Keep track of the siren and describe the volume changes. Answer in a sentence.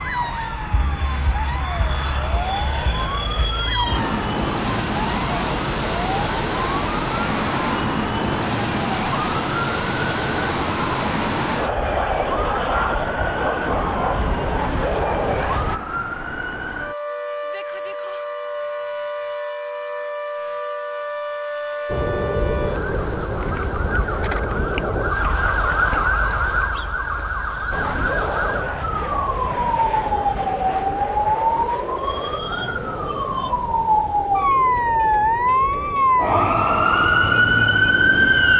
The loudness of the siren goes up.